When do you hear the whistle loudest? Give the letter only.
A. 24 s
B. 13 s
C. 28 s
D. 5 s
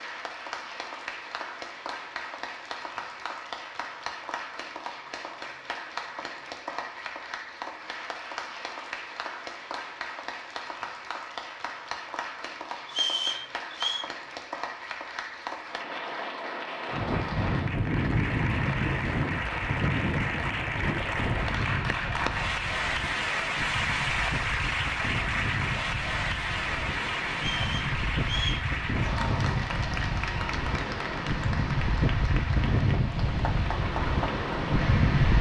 B.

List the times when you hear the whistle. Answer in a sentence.
The whistle can be heard from 12.8 to 14.1 s and from 27.4 to 28.6 s.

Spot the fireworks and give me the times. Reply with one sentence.
You can't hear the fireworks here.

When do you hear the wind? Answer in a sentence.
You can hear the wind from 16.9 to 35.3 s.